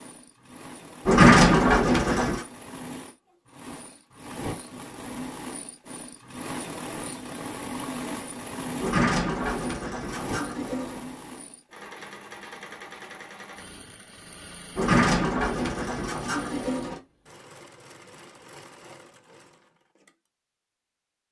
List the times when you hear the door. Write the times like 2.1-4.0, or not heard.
1.1-2.4, 8.8-11.0, 14.8-17.0.